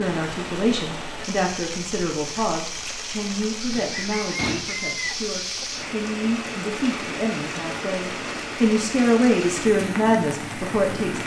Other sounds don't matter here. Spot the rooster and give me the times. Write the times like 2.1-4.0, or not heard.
3.8-5.7.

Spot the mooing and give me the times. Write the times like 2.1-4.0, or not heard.
not heard.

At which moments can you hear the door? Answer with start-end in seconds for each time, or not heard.
3.7-4.7.